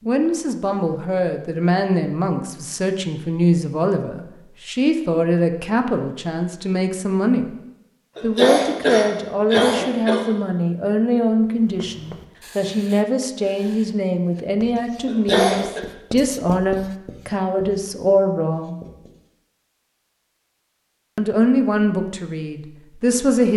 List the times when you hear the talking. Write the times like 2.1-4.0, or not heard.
0.0-7.5, 8.2-18.8, 21.1-23.5.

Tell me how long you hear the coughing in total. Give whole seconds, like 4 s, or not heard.
3 s.